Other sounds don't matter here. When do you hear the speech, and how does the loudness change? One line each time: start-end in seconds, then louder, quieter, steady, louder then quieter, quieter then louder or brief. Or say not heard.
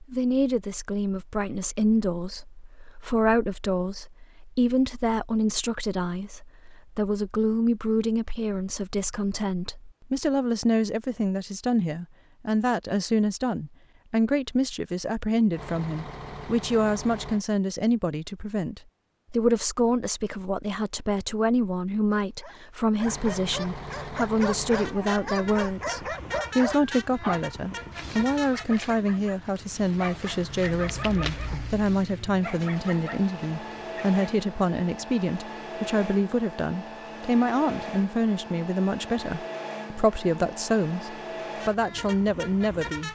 0.0-43.1 steady.